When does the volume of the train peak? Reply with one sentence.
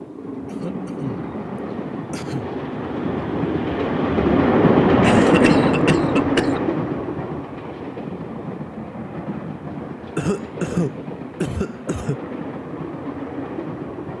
The volume of the train peaks at 5 seconds.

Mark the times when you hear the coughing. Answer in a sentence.
The coughing can be heard from 0.5 to 1.3 s, from 2.1 to 2.5 s, from 5.0 to 6.6 s and from 10.2 to 12.2 s.